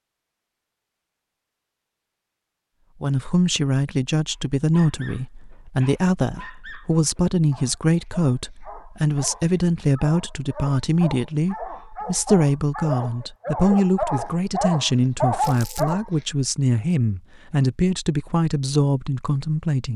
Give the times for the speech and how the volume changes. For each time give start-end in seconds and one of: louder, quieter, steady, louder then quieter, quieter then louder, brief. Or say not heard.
3.0-19.9 steady.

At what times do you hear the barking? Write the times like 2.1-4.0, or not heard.
4.3-16.2.